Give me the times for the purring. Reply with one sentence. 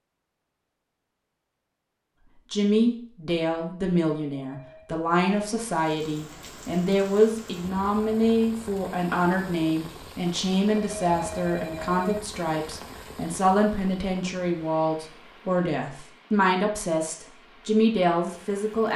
The purring can't be heard in this clip.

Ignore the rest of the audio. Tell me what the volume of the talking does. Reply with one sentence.
The loudness of the talking stays about the same.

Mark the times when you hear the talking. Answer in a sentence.
You can hear the talking from 2.5 to 18.9 s.